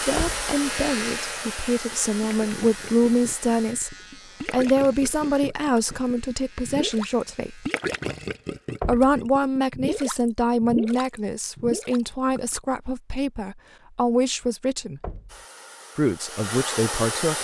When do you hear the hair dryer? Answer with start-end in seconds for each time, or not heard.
0.0-3.8, 15.2-17.3.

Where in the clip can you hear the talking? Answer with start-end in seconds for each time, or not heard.
0.0-7.7, 8.8-15.0, 15.9-17.3.